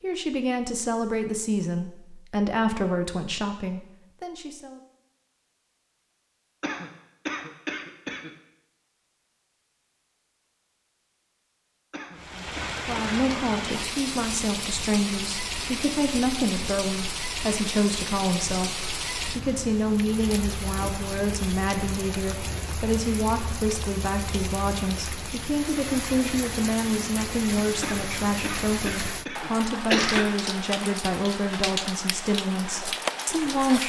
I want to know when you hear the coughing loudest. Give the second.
30 s.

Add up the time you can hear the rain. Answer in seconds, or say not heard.
22 s.